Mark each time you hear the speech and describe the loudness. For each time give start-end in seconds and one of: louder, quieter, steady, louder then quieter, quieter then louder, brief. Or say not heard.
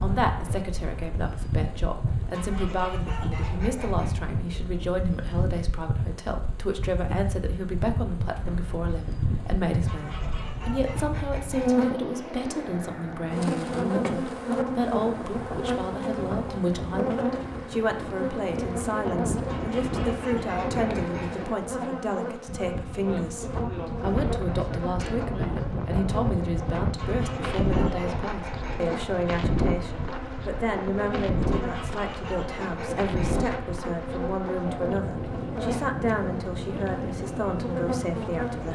0.0-38.7 steady.